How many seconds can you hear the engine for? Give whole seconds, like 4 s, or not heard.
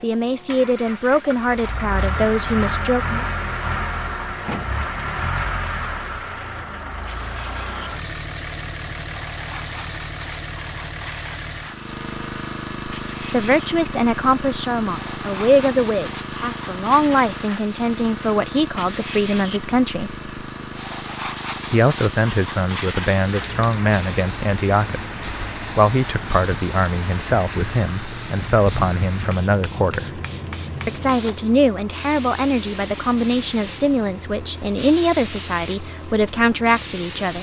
37 s.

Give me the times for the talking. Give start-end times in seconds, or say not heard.
0.0-3.2, 13.3-20.1, 21.7-30.2, 30.9-37.3.